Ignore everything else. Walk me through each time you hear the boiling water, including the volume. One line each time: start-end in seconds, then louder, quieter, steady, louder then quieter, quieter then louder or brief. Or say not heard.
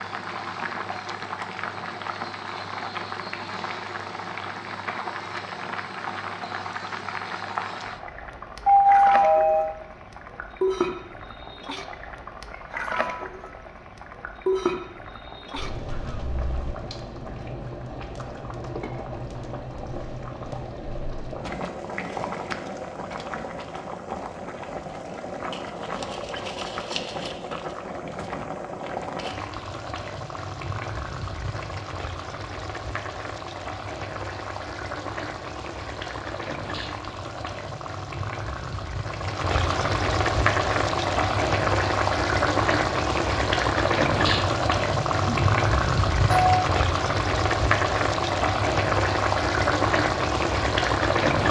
0.0-51.4 louder.